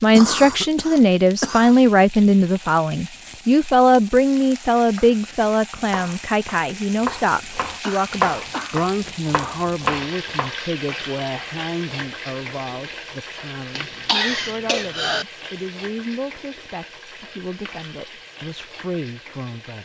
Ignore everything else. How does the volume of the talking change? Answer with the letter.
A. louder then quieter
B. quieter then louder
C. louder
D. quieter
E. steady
D.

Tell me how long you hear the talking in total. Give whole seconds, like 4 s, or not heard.
20 s.